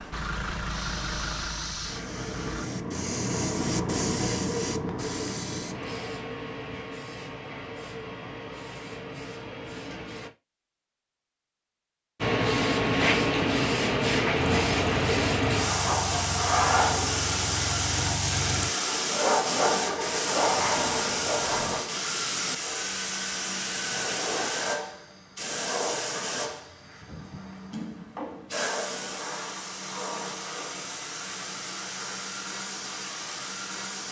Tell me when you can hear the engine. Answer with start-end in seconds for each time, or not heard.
0.0-2.7, 14.3-21.9.